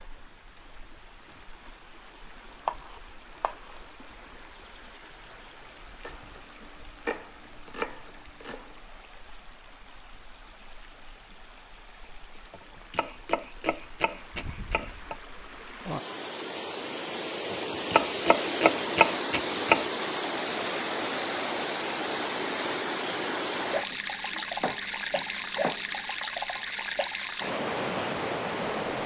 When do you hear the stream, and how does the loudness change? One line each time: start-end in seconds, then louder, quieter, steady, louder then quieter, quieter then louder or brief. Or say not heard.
0.0-29.0 louder.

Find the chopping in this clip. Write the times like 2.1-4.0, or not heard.
2.6-3.8, 6.0-8.8, 12.5-15.2, 17.5-19.9, 23.6-26.1.